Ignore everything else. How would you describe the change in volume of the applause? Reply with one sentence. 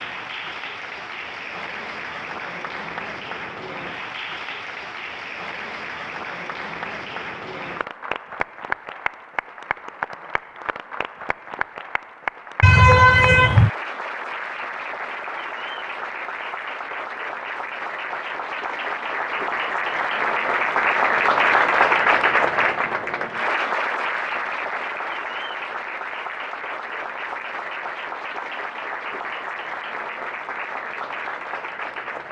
The volume of the applause goes up, then down.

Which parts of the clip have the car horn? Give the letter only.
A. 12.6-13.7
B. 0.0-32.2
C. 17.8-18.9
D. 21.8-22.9
A.